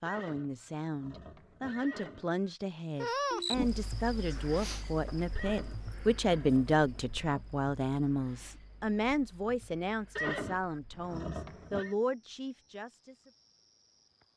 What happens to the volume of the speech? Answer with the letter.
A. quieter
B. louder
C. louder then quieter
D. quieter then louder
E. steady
C.